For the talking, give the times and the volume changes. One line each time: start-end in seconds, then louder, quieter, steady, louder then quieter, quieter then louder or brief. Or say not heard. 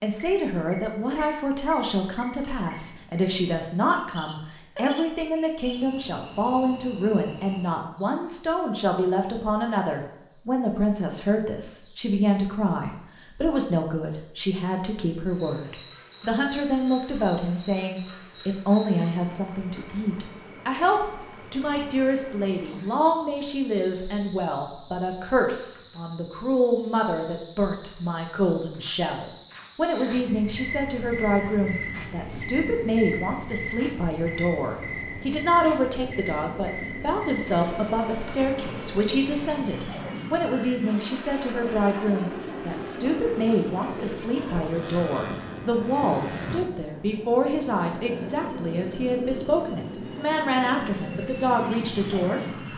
0.0-52.7 steady.